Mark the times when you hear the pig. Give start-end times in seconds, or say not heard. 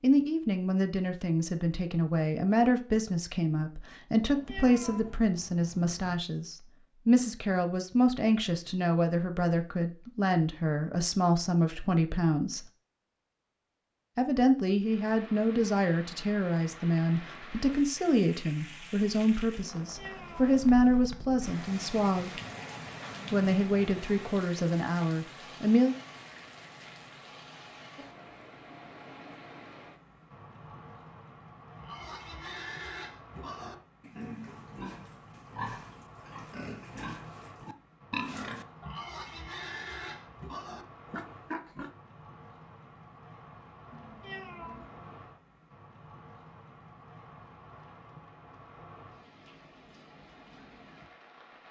31.8-41.9.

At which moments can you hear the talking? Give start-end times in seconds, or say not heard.
0.0-12.7, 14.2-22.4, 23.3-25.9.